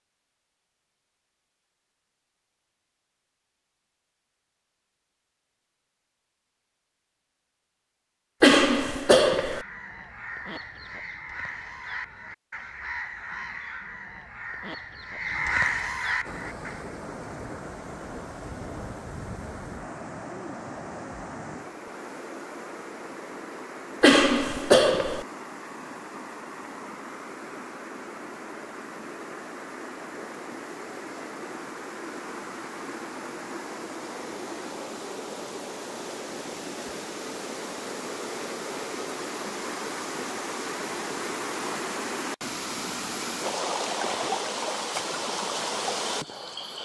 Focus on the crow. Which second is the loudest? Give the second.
16 s.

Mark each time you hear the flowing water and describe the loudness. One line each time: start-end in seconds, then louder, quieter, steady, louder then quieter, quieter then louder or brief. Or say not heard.
16.2-46.8 louder.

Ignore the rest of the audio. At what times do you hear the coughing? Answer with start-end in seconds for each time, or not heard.
8.4-9.7, 24.0-25.2.